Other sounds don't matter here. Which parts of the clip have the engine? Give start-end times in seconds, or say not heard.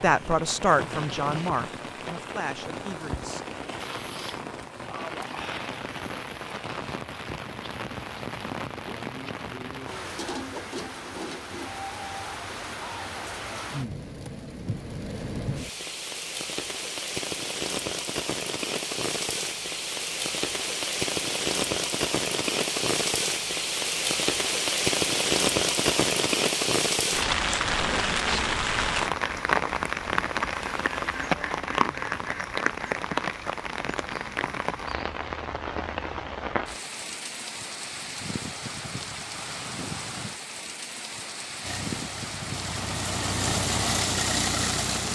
41.6-45.1.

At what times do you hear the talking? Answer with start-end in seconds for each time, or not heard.
0.0-3.4.